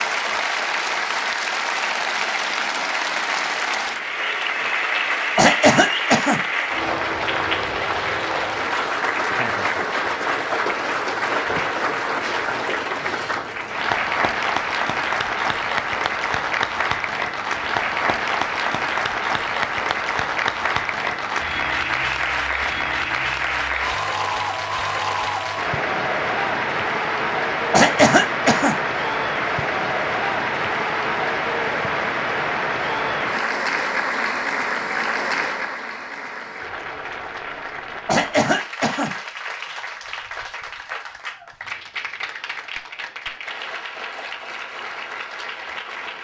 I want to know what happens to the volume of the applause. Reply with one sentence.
The loudness of the applause goes down.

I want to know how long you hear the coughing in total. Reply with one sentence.
You can hear the coughing for 3 seconds altogether.